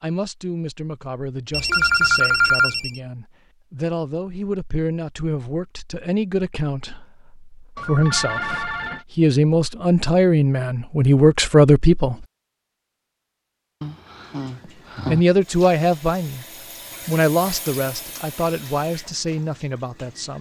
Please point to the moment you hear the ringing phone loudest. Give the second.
2 s.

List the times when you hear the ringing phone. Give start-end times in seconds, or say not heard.
1.5-3.0, 7.8-9.1, 13.8-15.2.